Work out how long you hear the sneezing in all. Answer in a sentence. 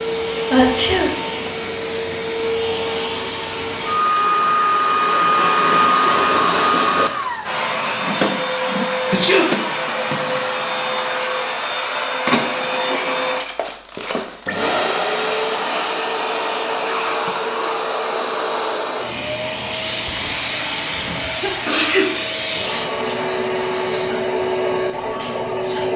The sneezing can be heard for 3 seconds in total.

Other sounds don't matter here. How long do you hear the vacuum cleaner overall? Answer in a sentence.
You can hear the vacuum cleaner for 26 seconds altogether.